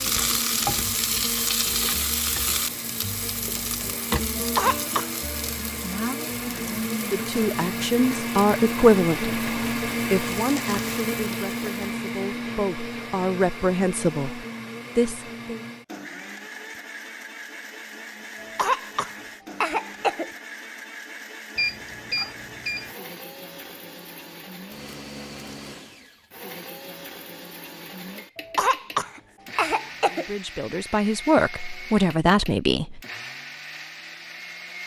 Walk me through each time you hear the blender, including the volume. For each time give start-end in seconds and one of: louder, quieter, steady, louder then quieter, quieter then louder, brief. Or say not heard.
0.1-34.8 louder then quieter.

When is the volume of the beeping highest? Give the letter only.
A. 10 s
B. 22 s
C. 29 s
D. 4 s
B.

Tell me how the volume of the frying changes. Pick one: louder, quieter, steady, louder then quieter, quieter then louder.
quieter.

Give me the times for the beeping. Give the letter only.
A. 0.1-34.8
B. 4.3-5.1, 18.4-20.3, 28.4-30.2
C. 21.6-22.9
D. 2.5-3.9
C.